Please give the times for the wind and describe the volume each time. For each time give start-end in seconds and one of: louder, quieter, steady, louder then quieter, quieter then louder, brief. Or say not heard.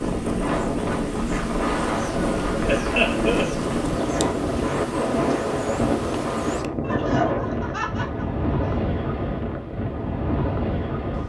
0.0-11.2 steady.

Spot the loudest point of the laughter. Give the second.
3 s.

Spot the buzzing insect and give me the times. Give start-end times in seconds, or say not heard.
0.0-6.7.